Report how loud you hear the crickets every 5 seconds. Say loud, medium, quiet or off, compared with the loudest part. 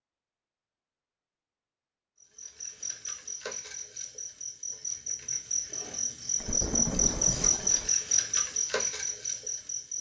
medium, loud.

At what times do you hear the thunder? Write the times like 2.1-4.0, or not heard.
6.3-7.9.